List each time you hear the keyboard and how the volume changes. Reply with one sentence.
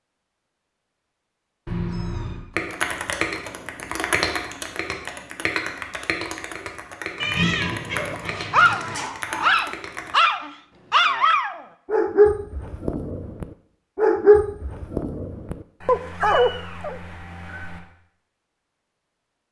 The keyboard can be heard from 2.5 to 10.2 s, getting quieter.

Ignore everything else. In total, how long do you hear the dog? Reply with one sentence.
The dog can be heard for 9 seconds in total.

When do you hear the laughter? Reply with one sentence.
The laughter can be heard from 7.3 to 9.7 s.